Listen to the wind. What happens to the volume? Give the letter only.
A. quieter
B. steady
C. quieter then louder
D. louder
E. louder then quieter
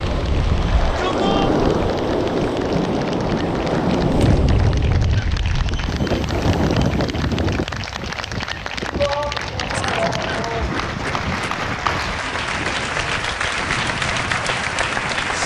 A.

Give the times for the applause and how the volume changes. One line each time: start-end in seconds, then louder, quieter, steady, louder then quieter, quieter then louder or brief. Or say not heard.
0.0-15.4 louder.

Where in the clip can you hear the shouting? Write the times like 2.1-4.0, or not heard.
0.6-1.5, 8.9-10.8.